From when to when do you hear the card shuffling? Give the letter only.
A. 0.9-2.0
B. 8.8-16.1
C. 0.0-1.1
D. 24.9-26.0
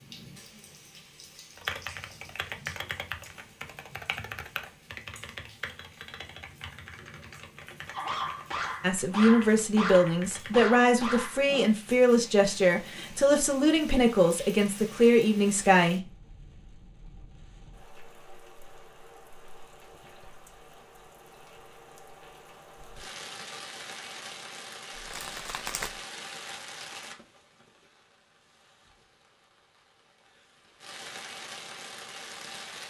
D.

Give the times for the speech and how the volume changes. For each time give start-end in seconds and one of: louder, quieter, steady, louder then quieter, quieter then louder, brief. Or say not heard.
8.8-16.1 steady.